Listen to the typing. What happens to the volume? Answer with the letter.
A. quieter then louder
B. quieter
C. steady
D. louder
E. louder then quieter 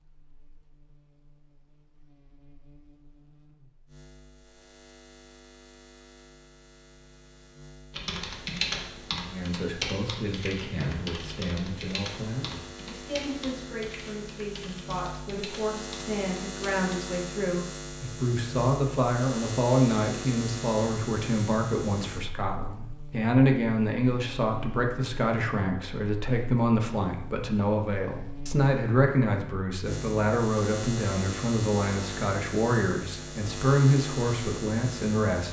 B.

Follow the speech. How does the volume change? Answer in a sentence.
The volume of the speech goes up.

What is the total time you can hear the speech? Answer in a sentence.
You can hear the speech for 26 seconds altogether.